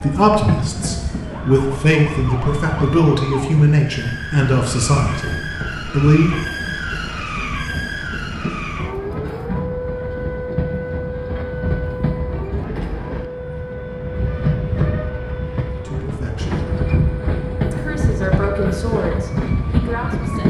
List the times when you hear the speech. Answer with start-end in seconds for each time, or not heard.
0.0-6.3, 15.8-16.7, 17.7-20.4.